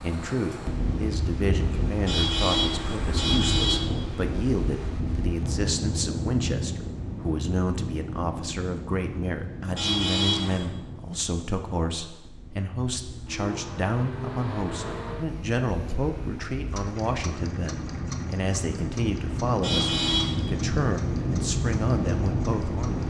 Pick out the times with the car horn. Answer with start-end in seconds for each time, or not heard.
2.0-3.9, 9.8-10.7, 19.6-20.4.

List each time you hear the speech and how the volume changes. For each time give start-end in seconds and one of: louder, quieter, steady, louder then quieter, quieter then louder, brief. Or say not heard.
0.0-23.0 steady.